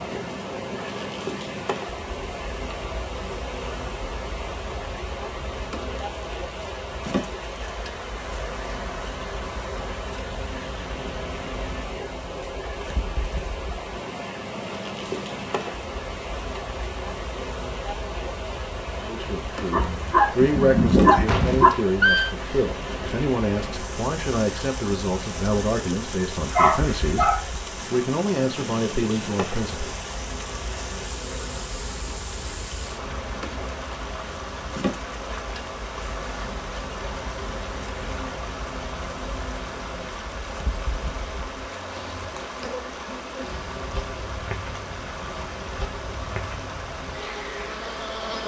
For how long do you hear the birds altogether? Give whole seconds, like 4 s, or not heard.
not heard.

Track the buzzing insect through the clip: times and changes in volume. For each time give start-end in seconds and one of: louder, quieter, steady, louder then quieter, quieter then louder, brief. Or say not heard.
0.0-48.4 steady.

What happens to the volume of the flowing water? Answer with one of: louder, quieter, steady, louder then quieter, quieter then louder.
steady.